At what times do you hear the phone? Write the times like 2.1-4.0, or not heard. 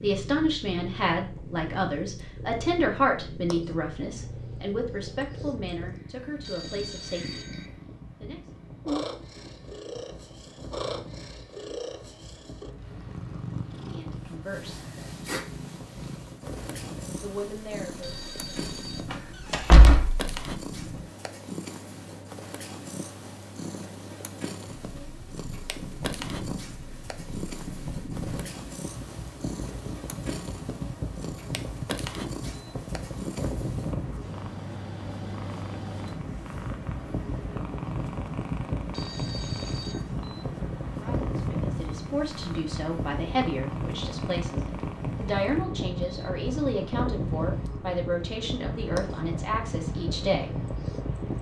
6.2-7.7, 17.9-19.1, 38.8-40.0.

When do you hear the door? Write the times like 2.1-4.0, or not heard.
19.1-20.4.